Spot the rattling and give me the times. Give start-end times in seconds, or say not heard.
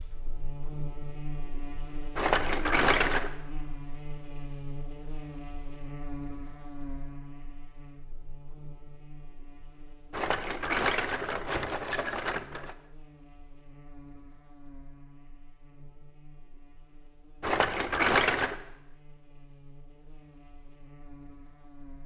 2.1-3.3, 10.1-12.8, 17.4-18.6.